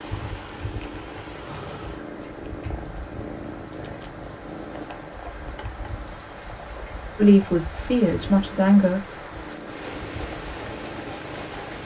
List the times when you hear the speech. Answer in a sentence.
The speech can be heard from 7.2 to 9.0 s.